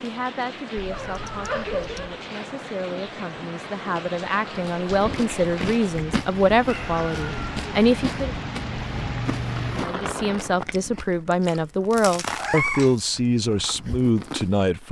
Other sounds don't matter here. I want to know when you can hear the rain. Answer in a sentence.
The rain can be heard from 0.0 to 10.7 s.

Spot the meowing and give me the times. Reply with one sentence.
The meowing can be heard from 0.8 to 2.1 s, from 6.7 to 7.4 s and from 12.3 to 12.9 s.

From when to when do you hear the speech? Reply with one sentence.
You can hear the speech from 0.0 to 8.3 s and from 9.8 to 14.8 s.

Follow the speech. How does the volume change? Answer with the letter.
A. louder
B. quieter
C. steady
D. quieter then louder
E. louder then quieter
A.